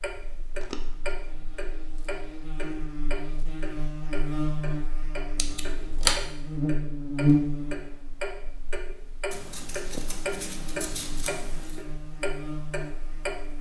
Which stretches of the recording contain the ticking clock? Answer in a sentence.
The ticking clock can be heard from 0.0 to 13.5 s.